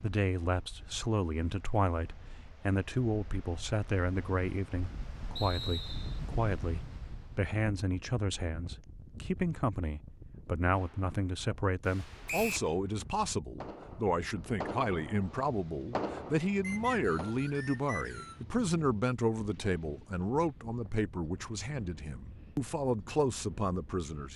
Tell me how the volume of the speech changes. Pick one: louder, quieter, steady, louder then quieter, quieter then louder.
steady.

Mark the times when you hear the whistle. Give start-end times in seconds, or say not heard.
5.3-6.2, 12.2-12.7, 16.6-18.4.